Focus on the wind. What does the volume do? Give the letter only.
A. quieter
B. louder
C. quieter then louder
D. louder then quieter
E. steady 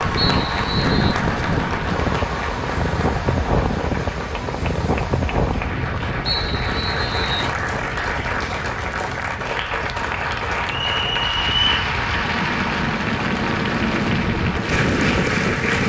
C.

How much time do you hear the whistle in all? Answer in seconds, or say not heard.
3 s.